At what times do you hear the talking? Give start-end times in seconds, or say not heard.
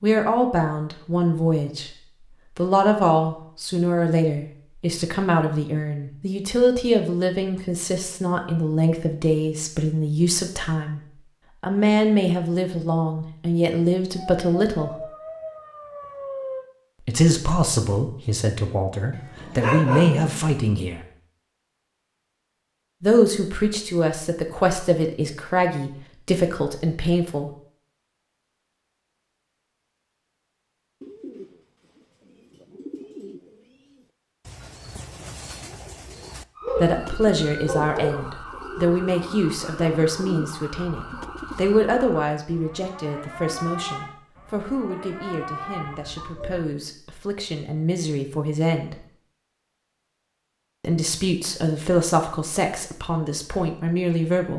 0.0-15.1, 17.0-21.0, 23.0-27.5, 36.8-49.0, 50.8-54.5.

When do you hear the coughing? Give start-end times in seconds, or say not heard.
not heard.